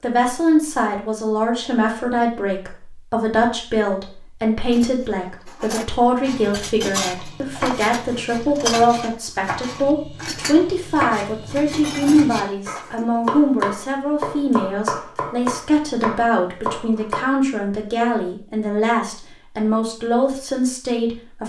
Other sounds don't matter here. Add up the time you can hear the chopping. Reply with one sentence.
The chopping can be heard for 11 seconds in total.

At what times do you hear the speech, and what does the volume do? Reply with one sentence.
You can hear the speech from 0.0 to 21.4 s, at a steady volume.